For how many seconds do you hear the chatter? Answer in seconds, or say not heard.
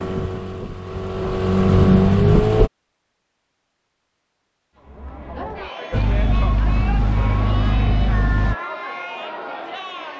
5 s.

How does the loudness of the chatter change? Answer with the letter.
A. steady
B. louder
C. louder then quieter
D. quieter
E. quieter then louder
A.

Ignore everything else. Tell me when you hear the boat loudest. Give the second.
2 s.